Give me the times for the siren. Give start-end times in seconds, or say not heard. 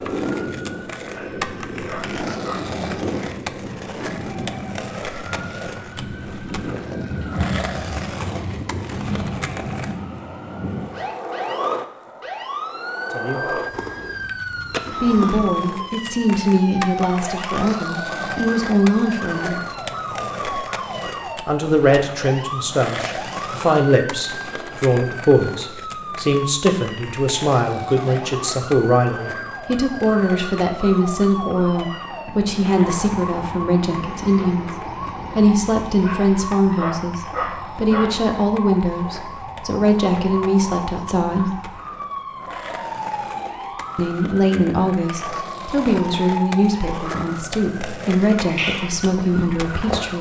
0.0-50.1.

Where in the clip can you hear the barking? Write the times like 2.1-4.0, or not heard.
1.1-2.6, 36.0-38.1.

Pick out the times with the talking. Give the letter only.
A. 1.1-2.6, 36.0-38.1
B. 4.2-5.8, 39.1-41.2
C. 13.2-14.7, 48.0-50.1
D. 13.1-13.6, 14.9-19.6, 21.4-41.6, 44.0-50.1
D.